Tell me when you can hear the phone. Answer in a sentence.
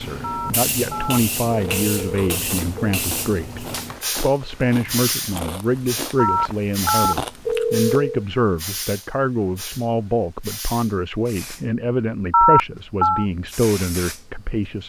You can hear the phone from 0.2 to 2.8 s, from 6.2 to 8.1 s and from 12.3 to 13.2 s.